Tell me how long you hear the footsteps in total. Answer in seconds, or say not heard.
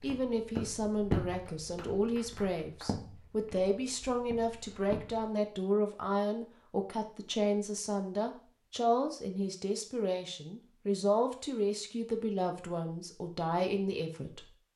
5 s.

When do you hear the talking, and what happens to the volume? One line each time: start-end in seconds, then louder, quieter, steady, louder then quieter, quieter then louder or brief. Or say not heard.
0.0-14.5 steady.